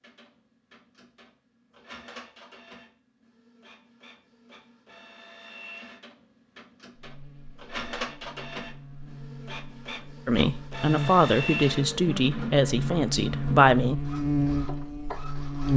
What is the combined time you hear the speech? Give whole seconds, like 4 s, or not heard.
4 s.